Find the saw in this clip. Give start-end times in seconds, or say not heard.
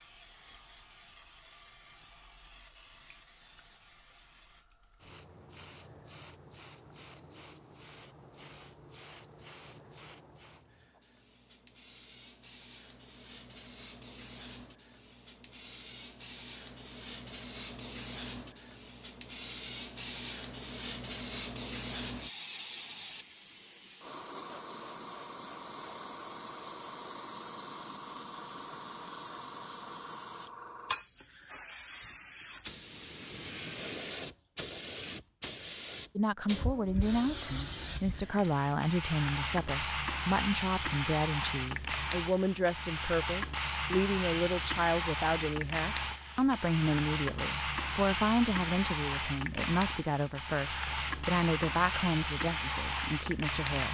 not heard.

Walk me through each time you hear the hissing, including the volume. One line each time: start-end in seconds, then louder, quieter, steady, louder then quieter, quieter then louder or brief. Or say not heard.
0.0-53.8 louder.